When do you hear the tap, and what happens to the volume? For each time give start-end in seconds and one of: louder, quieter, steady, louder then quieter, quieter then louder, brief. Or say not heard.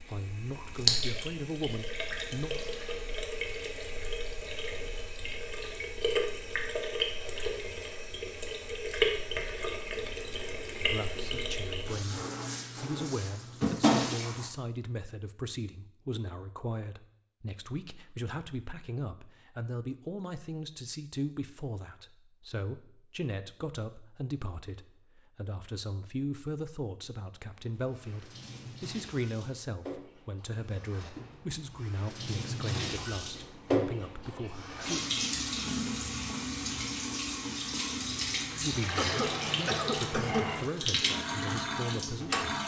0.0-14.5 quieter then louder
27.6-42.6 louder.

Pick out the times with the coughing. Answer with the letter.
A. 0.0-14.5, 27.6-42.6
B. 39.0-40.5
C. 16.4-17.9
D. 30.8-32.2
B.